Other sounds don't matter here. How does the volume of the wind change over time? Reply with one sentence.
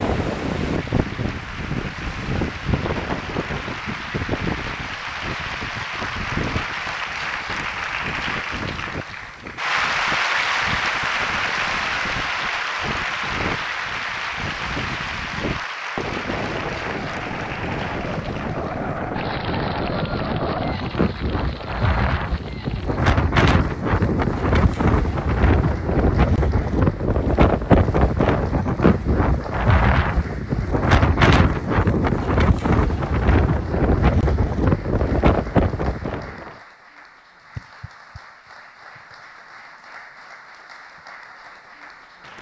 The volume of the wind goes down, then up.